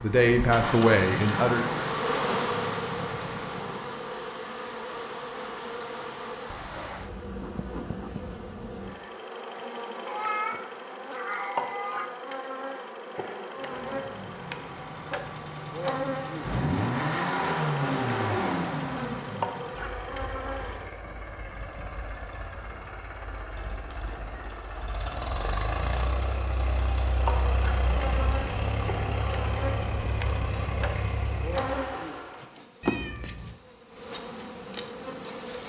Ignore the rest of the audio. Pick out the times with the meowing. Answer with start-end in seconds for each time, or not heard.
10.1-12.1, 32.8-33.5.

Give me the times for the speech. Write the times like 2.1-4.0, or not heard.
0.0-1.6.